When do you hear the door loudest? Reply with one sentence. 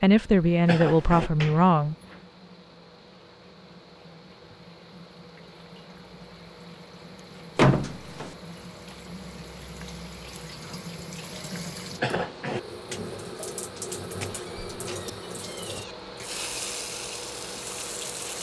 The loudest moment of the door is at 8 seconds.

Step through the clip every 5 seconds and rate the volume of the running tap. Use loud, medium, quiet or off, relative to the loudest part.
quiet, medium, loud, loud.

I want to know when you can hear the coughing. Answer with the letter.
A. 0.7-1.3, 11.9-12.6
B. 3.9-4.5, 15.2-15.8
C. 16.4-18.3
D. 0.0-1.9
A.